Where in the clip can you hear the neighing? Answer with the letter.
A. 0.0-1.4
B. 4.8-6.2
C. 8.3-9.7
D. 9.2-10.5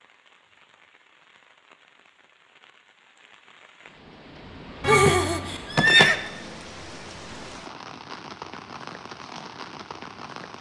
B.